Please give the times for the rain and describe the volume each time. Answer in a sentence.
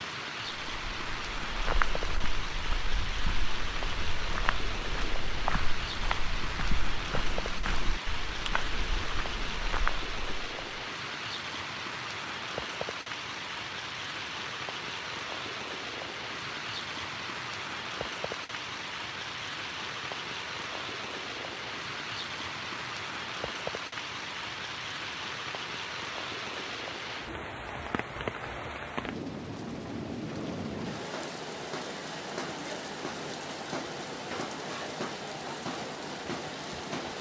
You can hear the rain from 0.0 to 37.1 s, at a steady volume.